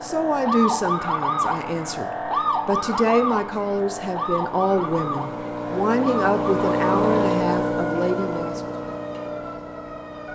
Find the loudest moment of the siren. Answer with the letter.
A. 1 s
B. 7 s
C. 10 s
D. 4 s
A.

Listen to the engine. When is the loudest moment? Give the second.
7 s.